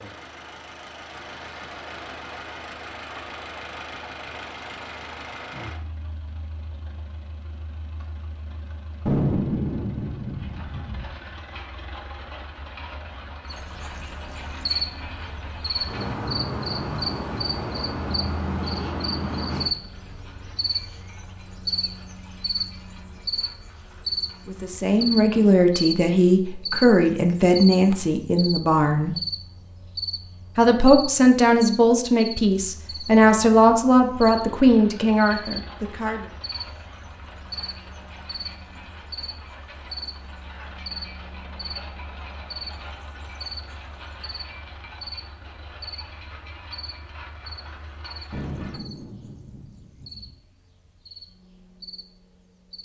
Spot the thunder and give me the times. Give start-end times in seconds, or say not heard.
9.1-11.1, 48.3-50.4.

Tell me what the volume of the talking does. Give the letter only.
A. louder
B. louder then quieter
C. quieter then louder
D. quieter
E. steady
E.